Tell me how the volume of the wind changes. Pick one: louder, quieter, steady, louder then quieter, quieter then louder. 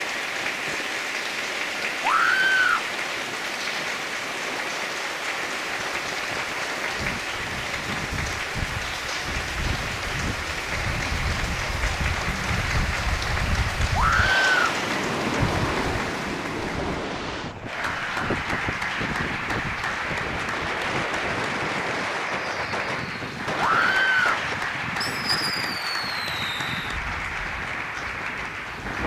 louder then quieter.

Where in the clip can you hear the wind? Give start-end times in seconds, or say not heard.
0.0-29.0.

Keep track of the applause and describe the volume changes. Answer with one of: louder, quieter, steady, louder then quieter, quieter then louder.
steady.